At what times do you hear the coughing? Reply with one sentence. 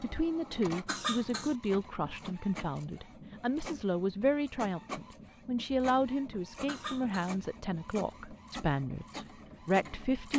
You can hear the coughing from 0.8 to 1.6 s and from 6.7 to 7.3 s.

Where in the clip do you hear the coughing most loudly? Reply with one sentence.
The loudest moment of the coughing is at 1 second.